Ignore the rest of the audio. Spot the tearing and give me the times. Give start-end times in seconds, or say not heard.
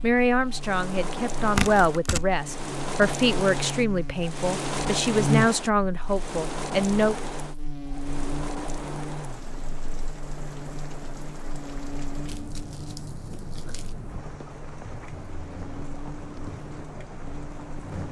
1.6-2.2, 12.2-13.9.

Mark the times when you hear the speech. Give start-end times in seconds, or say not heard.
0.0-7.2.